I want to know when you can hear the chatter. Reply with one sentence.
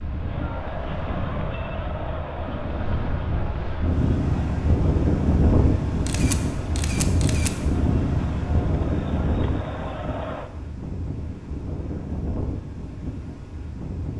You can hear the chatter from 0.0 to 10.5 s.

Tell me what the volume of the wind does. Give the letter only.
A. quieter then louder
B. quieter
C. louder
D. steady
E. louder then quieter
E.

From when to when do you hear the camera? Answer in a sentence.
You can hear the camera from 6.0 to 7.5 s.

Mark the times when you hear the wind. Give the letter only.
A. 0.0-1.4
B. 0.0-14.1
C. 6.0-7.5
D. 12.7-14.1
B.